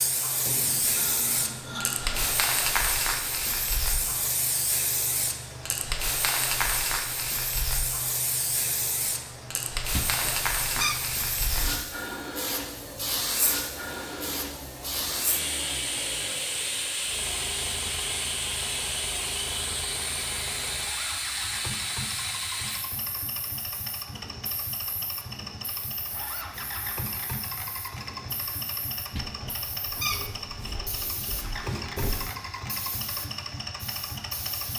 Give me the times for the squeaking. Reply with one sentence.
You can hear the squeaking from 9.9 to 11.0 s and from 29.1 to 30.9 s.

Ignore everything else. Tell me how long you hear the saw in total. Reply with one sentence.
You can hear the saw for 4 seconds altogether.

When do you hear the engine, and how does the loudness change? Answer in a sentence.
You can hear the engine from 0.0 to 34.7 s, getting louder.